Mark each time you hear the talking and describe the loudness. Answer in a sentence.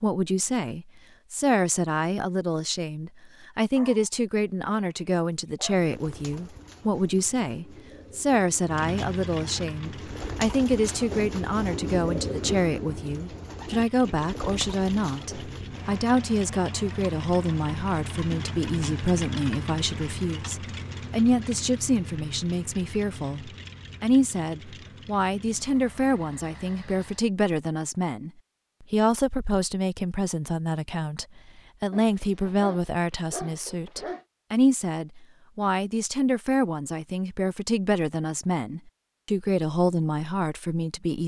You can hear the talking from 0.0 to 41.2 s, at a steady volume.